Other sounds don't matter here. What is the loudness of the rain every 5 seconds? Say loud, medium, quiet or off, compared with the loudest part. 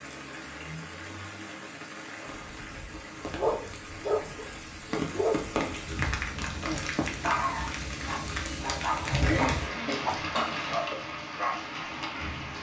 medium, loud, loud.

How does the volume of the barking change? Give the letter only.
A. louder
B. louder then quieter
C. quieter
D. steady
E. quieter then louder
D.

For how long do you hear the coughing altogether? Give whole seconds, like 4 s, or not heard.
2 s.